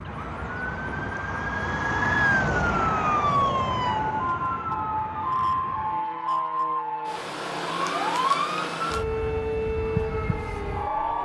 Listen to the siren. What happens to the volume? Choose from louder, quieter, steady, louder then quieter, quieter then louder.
steady.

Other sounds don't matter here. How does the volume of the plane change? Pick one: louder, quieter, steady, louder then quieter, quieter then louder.
quieter.